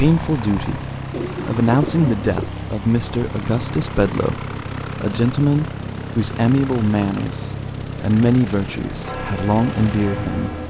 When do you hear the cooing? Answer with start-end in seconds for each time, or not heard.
1.1-2.5.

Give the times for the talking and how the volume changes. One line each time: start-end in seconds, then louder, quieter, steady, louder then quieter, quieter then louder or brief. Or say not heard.
0.0-10.5 steady.